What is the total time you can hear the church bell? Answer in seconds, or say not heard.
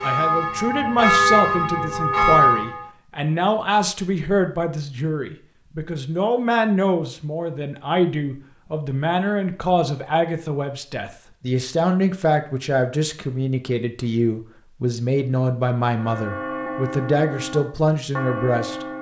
6 s.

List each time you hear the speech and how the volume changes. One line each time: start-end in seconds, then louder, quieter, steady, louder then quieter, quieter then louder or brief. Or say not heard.
0.0-18.9 steady.